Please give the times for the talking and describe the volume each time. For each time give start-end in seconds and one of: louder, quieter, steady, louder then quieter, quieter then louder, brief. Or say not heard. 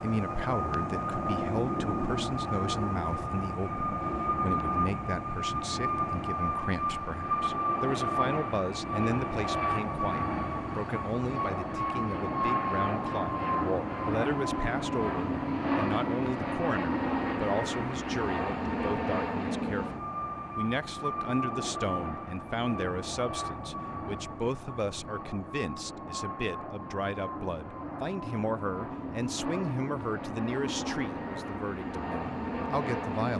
0.0-33.3 steady.